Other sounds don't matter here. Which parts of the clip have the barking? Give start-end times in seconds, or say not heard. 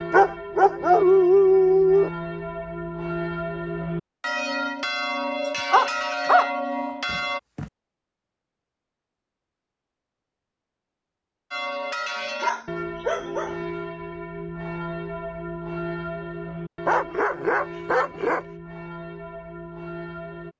0.1-2.1, 5.7-6.5, 7.1-7.7, 12.2-13.7, 16.9-18.4.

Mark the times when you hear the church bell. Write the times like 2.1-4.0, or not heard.
0.0-7.4, 11.5-20.5.